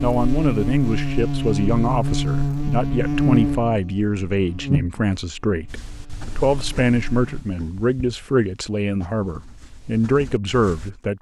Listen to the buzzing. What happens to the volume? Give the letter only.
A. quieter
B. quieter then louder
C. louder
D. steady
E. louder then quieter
A.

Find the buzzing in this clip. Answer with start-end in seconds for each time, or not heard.
0.0-7.5.